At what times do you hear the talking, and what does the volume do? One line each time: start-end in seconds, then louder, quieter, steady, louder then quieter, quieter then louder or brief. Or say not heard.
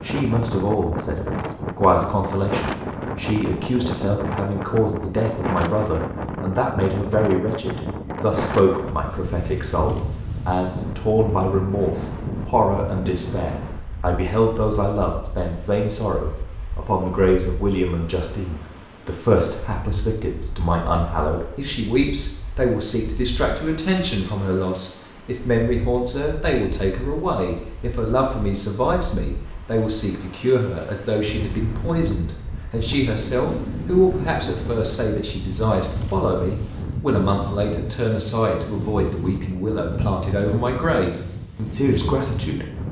0.0-42.6 steady.